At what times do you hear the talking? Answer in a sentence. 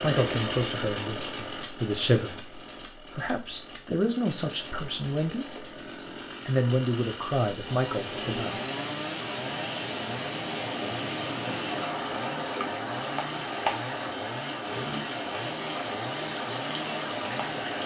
You can hear the talking from 0.0 to 5.6 s and from 6.5 to 8.6 s.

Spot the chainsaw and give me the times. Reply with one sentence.
The chainsaw can be heard from 0.0 to 17.8 s.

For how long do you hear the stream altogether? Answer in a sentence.
The stream can be heard for 10 seconds in total.